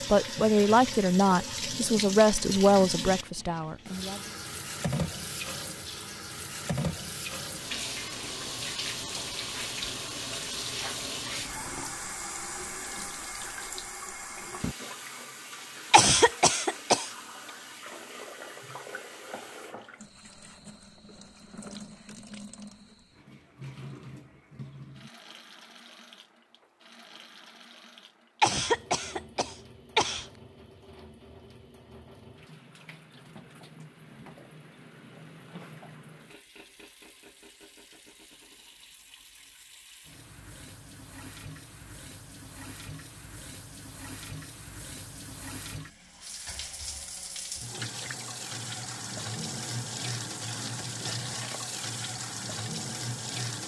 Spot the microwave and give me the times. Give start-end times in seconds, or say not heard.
not heard.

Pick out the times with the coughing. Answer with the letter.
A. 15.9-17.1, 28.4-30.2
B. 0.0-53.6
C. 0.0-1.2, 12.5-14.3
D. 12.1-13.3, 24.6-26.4
A.